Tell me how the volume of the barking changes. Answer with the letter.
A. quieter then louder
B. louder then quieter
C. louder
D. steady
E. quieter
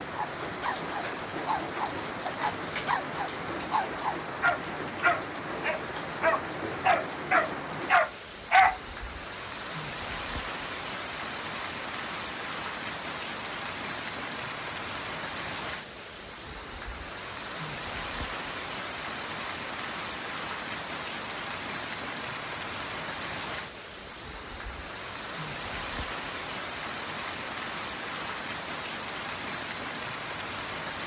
C.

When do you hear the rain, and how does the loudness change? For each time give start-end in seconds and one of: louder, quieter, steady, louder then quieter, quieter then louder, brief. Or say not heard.
0.0-31.0 steady.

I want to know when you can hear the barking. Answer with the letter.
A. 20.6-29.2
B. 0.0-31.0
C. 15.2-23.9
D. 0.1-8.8
D.